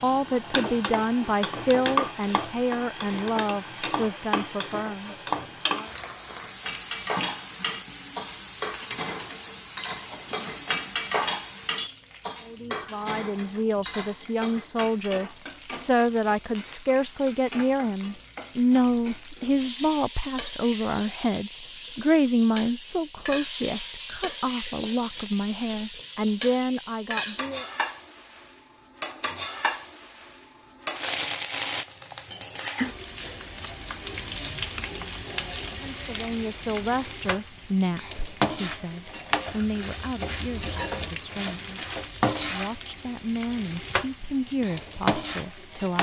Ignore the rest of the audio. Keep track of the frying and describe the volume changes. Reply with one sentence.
The loudness of the frying goes down, then up.